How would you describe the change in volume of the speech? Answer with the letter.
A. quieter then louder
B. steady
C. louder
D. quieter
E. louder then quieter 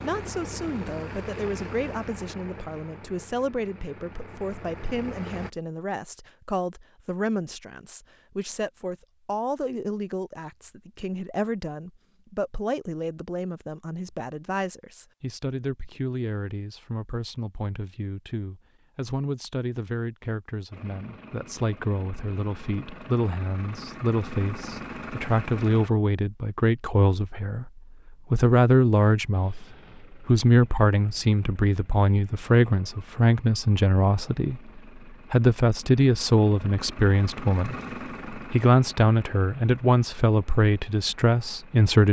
C.